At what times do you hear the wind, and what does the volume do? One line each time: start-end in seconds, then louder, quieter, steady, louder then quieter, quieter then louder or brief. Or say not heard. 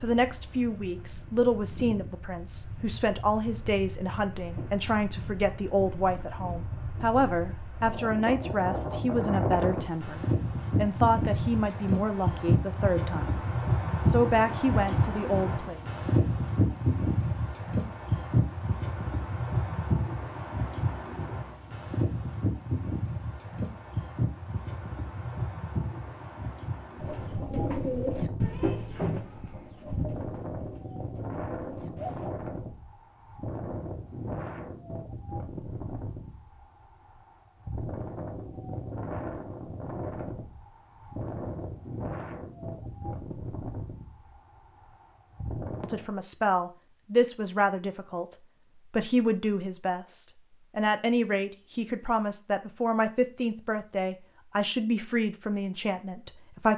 0.0-46.1 louder then quieter.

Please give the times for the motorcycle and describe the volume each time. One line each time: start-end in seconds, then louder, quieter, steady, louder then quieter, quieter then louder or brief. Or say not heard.
not heard.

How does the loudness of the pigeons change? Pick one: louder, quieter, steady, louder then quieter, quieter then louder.
quieter.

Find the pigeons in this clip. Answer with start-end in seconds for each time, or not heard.
27.0-32.4.